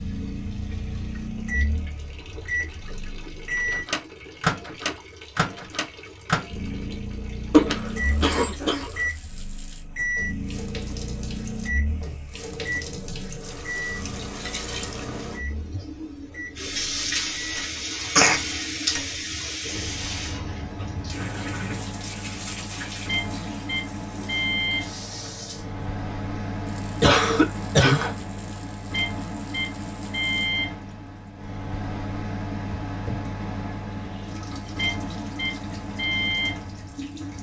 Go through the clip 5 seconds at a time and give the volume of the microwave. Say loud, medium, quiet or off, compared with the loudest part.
loud, loud, loud, medium, loud, loud, loud, loud.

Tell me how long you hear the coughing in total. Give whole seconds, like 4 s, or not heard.
3 s.